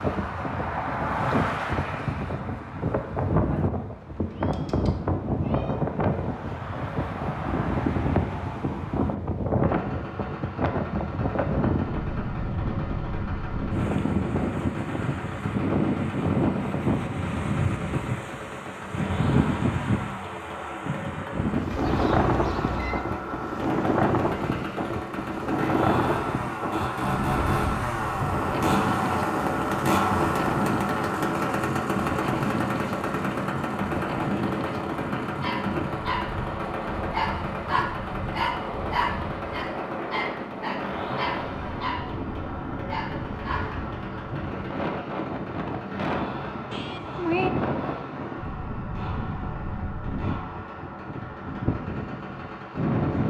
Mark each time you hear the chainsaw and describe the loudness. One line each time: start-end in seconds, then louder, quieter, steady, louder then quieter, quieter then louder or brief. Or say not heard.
9.6-53.2 louder then quieter.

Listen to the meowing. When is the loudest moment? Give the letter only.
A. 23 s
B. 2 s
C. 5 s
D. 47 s
D.